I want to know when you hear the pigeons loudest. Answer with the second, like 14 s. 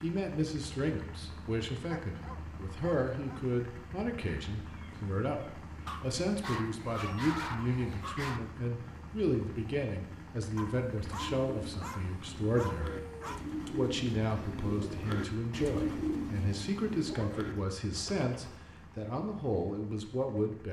16 s.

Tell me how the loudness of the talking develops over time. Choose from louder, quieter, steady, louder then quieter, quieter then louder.
steady.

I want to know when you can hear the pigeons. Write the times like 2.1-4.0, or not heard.
11.0-18.6.